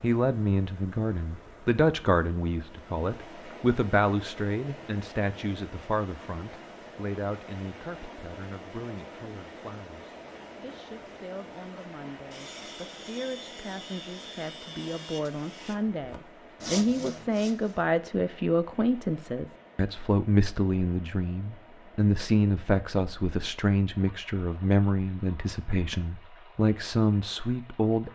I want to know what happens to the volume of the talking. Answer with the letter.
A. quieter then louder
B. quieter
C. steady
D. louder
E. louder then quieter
A.